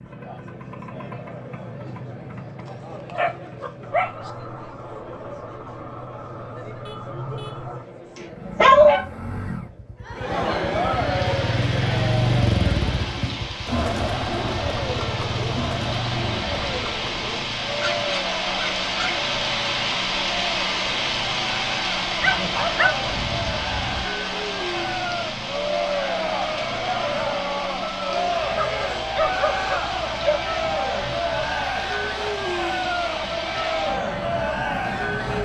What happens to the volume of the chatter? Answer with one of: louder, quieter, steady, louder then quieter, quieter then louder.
louder.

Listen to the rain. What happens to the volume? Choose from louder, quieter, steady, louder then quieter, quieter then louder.
louder then quieter.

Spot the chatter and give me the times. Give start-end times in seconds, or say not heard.
0.0-35.3.